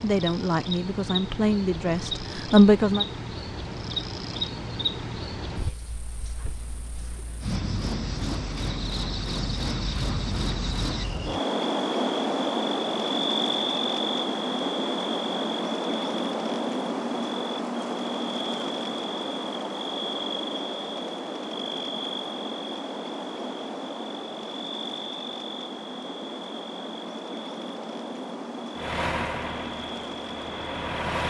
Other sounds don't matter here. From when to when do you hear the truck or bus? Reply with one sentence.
The truck or bus can be heard from 28.8 to 31.2 s.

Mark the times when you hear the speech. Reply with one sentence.
You can hear the speech from 0.0 to 3.0 s.